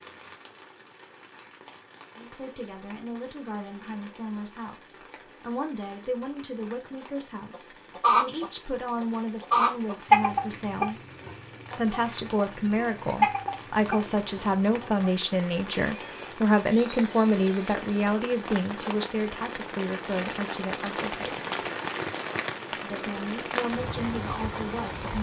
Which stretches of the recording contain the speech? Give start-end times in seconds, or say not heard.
2.1-11.0, 11.8-21.5, 22.7-25.1.